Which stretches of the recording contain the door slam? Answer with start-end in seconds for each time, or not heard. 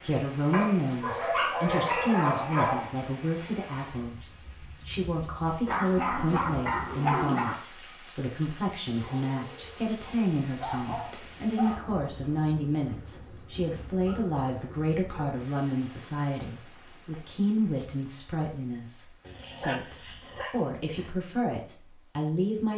not heard.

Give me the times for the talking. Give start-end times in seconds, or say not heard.
0.0-22.7.